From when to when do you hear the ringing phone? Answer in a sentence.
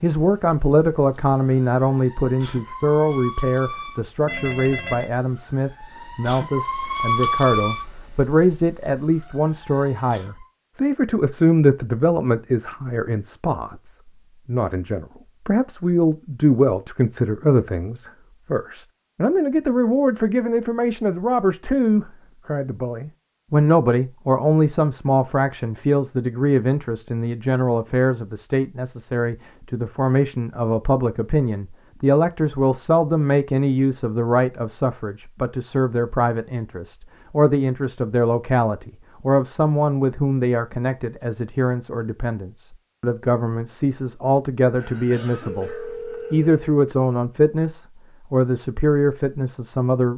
You can hear the ringing phone from 4.2 to 5.1 s and from 44.8 to 46.6 s.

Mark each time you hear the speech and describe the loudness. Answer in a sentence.
The speech can be heard from 0.0 to 50.1 s, at a steady volume.